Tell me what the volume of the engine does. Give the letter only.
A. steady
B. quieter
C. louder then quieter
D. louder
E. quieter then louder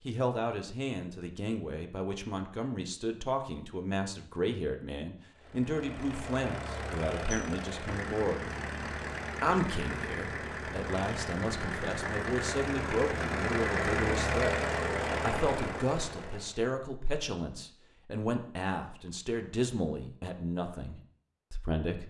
D.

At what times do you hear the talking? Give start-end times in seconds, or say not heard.
0.1-8.5, 9.4-14.6, 15.2-22.0.